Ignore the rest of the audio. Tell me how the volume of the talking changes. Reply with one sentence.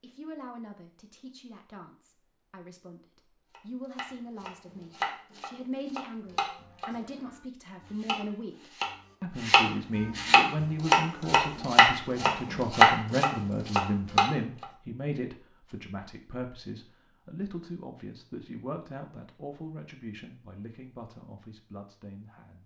The loudness of the talking goes up, then down.